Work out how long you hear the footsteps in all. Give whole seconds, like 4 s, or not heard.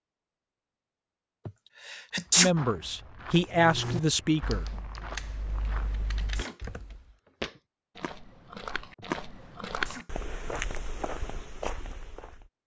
10 s.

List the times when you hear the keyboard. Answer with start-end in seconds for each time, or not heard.
3.5-7.2.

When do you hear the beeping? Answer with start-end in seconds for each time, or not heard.
not heard.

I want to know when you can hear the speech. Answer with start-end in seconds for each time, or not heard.
2.4-4.7.